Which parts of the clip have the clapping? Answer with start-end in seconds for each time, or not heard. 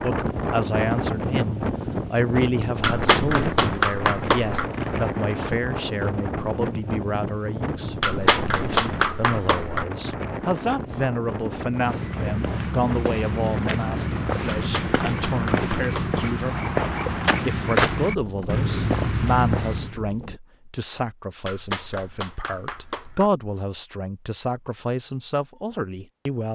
2.8-4.7, 8.0-9.8, 14.4-16.2, 21.4-23.3.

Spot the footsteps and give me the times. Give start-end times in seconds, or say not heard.
11.7-20.0.